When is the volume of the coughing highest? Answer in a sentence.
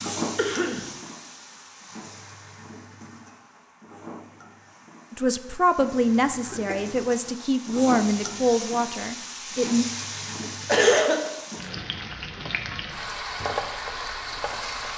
The volume of the coughing peaks at 11 seconds.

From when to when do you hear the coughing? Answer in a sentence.
The coughing can be heard from 0.3 to 0.9 s, from 6.4 to 7.3 s and from 10.7 to 11.3 s.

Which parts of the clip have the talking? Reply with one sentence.
The talking can be heard from 5.1 to 9.8 s.